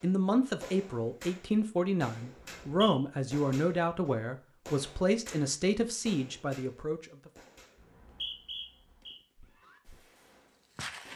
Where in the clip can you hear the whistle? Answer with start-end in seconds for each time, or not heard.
2.4-3.0, 7.8-9.2.